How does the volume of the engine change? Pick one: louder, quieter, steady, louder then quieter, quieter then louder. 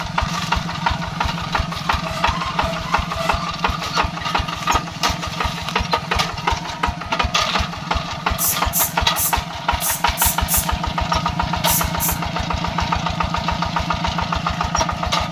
steady.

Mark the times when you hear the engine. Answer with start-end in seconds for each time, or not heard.
0.0-15.2.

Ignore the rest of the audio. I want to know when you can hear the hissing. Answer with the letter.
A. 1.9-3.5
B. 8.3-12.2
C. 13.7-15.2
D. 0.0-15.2
B.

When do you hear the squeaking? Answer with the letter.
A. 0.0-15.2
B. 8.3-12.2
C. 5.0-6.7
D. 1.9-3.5
D.